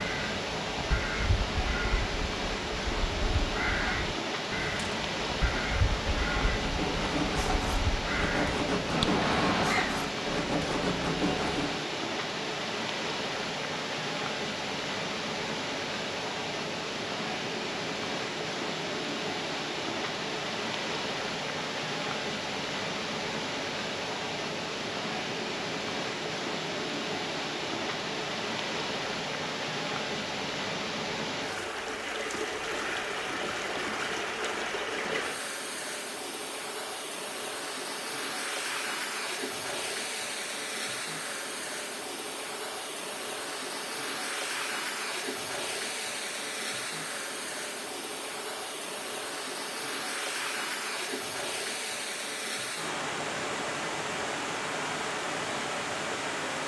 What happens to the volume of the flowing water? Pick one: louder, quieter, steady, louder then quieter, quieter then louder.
steady.